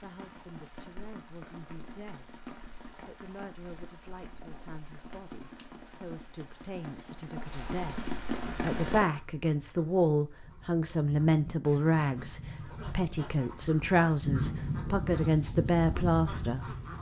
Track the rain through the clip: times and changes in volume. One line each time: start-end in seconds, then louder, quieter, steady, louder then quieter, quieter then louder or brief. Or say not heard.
0.0-9.1 louder.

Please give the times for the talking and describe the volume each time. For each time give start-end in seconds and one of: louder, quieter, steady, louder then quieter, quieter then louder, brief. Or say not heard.
0.0-2.4 brief
3.0-16.8 louder.